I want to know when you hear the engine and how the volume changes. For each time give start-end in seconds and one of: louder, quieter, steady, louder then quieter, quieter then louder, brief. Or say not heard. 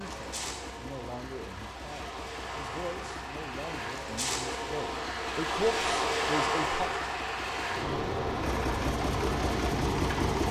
0.0-10.4 louder.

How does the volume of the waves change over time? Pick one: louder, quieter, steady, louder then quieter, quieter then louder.
louder.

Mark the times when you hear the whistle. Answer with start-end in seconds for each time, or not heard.
not heard.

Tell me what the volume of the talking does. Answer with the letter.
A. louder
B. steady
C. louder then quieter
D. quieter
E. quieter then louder
A.